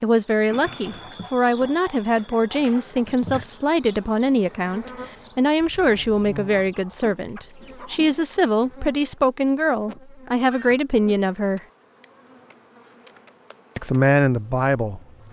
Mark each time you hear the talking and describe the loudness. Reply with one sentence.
You can hear the talking from 0.0 to 11.6 s, at a steady volume; and briefly from 13.8 to 15.0 s.